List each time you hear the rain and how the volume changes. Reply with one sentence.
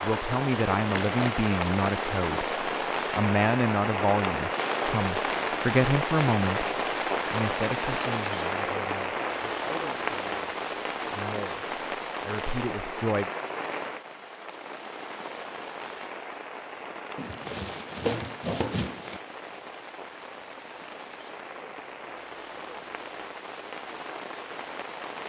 You can hear the rain from 0.0 to 25.2 s, getting quieter.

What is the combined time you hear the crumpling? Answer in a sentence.
The crumpling can be heard for 3 seconds in total.